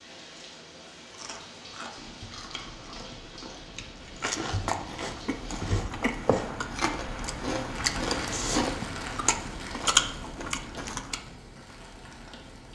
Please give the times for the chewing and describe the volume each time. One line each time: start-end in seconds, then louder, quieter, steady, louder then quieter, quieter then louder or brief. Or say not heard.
1.1-11.2 louder.